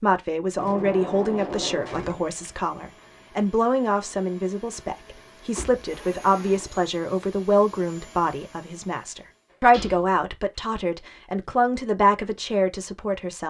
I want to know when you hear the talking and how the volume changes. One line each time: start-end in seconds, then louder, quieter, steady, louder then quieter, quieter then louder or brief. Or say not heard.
0.0-13.4 steady.